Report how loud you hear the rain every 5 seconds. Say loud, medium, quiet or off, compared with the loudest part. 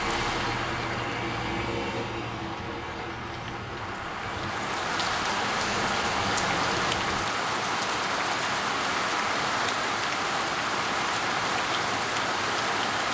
medium, loud, loud.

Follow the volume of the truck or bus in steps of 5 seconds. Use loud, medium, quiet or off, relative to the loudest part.
loud, loud, off.